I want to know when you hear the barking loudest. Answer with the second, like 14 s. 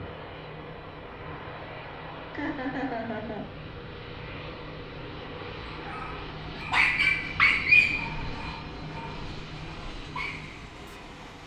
8 s.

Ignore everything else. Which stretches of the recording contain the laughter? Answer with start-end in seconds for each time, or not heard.
2.3-3.5.